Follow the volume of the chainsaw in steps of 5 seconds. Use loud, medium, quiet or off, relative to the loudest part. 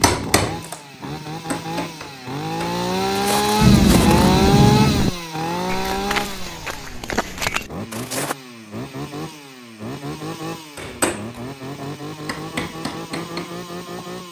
loud, medium, medium.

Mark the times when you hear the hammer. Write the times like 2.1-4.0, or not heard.
0.0-2.8, 10.8-14.2.